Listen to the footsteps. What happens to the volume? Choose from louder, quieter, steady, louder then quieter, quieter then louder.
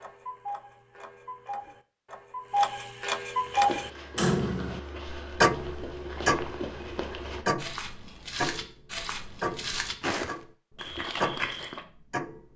louder.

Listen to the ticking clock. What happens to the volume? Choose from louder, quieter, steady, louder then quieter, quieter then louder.
louder then quieter.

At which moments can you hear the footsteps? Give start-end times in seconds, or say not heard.
3.5-11.8.